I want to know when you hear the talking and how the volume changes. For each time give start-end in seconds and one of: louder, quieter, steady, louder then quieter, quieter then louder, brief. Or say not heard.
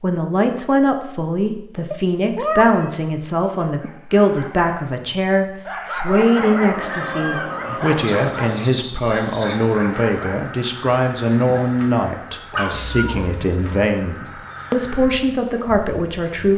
0.0-16.5 steady.